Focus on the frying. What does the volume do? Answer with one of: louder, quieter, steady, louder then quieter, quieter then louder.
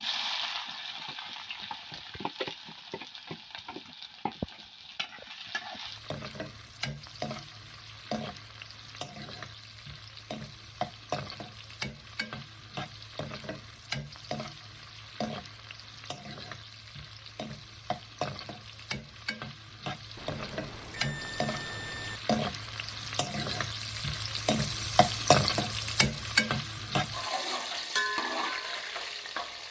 louder.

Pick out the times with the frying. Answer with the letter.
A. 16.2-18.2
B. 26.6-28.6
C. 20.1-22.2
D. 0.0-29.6
D.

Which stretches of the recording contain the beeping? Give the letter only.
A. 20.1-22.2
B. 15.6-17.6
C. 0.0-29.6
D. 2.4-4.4
A.